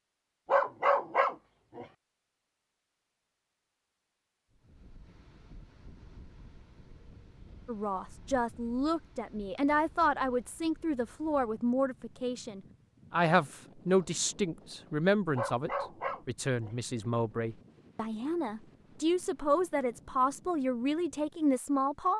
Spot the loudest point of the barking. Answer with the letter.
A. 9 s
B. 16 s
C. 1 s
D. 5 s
C.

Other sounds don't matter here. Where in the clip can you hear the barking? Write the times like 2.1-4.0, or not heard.
0.5-1.9, 15.3-16.7.